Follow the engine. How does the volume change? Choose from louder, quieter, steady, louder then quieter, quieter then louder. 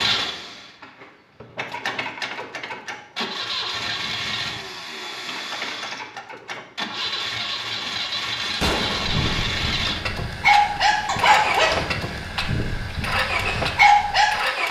louder.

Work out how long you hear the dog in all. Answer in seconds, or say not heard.
6 s.